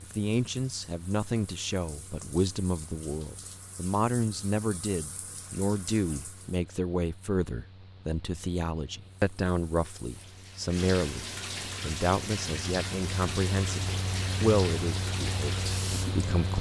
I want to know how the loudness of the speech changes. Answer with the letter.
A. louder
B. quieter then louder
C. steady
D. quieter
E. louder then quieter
C.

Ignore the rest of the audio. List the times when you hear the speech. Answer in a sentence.
You can hear the speech from 0.0 to 16.5 s.